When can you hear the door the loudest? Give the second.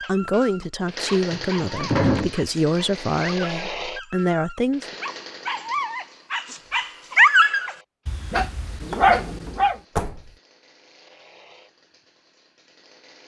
2 s.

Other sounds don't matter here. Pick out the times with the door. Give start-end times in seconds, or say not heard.
1.3-2.4, 8.9-10.3.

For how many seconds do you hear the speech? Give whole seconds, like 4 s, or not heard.
5 s.